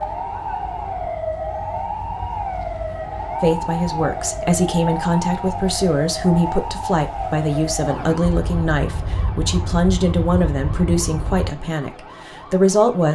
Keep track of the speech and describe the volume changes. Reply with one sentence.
The volume of the speech stays about the same.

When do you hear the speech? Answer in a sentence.
The speech can be heard from 3.4 to 13.1 s.